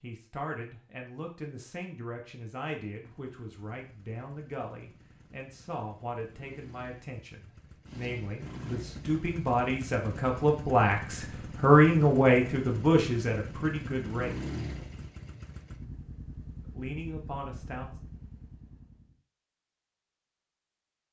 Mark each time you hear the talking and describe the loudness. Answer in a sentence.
The talking can be heard from 0.0 to 14.4 s, getting louder; and briefly from 16.7 to 17.9 s.